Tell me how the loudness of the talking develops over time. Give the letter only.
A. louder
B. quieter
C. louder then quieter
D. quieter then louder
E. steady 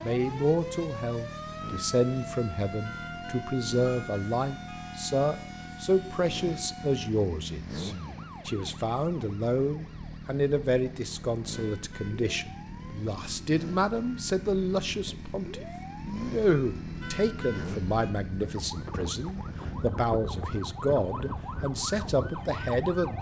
E.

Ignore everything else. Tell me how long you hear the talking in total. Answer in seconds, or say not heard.
23 s.